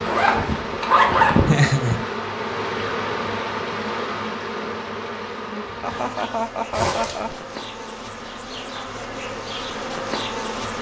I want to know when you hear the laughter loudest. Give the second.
2 s.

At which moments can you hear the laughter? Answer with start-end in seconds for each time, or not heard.
1.4-2.0, 5.8-7.3.